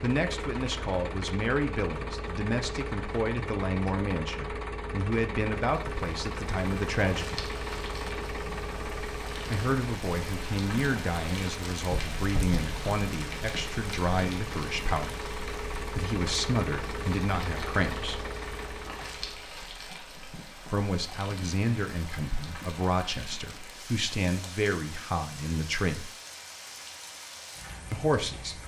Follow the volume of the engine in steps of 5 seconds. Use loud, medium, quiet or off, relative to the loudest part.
loud, loud, medium, loud, off, off.